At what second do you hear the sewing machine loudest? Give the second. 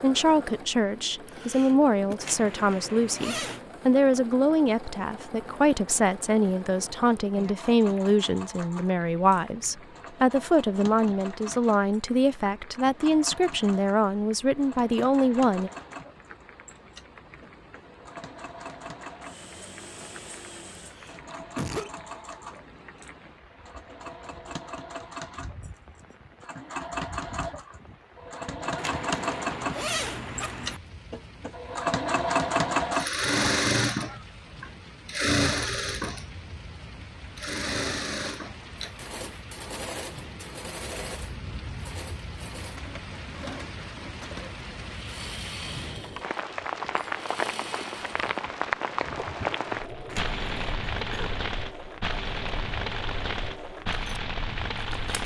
33 s.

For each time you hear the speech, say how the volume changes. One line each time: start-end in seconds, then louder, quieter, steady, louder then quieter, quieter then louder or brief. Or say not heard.
0.0-15.7 steady.